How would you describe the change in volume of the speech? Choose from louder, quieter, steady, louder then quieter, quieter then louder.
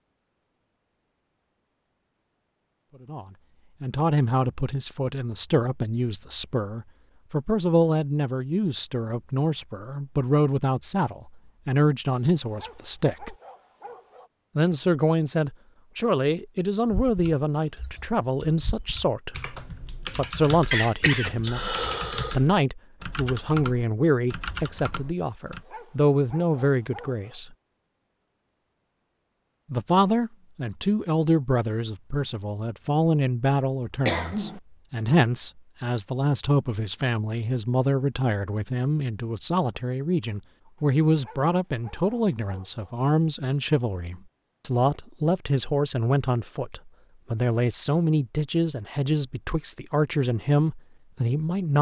steady.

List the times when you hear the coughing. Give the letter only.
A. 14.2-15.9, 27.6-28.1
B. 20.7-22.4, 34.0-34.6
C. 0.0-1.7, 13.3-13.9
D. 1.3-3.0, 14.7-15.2
B.